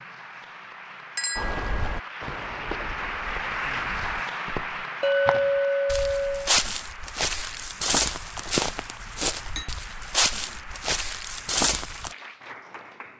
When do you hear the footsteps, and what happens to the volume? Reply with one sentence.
The footsteps can be heard from 1.4 to 12.2 s, getting louder.